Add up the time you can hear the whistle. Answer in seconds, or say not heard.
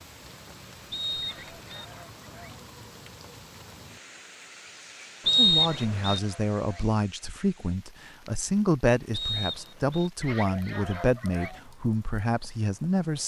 3 s.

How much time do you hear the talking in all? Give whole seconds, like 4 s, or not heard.
8 s.